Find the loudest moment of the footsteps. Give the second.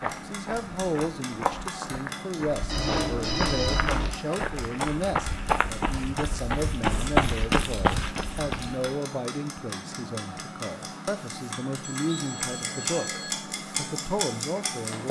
7 s.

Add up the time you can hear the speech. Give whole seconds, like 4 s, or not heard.
15 s.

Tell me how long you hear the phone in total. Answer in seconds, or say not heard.
3 s.